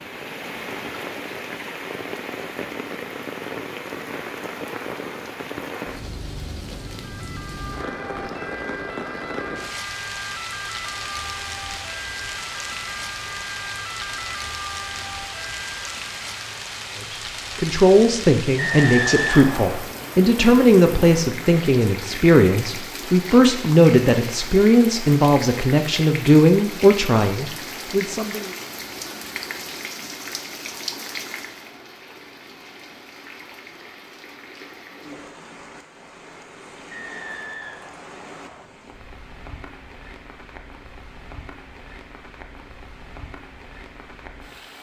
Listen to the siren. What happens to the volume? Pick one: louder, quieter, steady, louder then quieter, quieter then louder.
steady.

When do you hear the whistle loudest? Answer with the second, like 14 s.
19 s.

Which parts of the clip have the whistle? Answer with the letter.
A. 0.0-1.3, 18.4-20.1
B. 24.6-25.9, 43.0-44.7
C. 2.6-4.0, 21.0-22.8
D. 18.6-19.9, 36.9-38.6
D.